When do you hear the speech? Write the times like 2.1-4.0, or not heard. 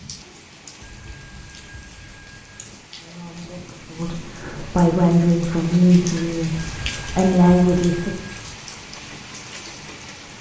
3.0-8.2.